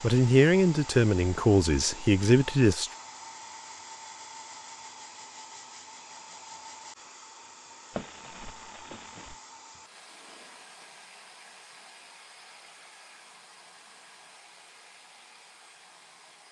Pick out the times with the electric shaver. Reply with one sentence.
The electric shaver can't be heard in this clip.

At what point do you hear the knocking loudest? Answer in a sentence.
The loudest moment of the knocking is at 8 seconds.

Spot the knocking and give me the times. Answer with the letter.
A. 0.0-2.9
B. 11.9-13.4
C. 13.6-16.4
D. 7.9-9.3
D.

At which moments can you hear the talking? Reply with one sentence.
The talking can be heard from 0.0 to 2.9 s.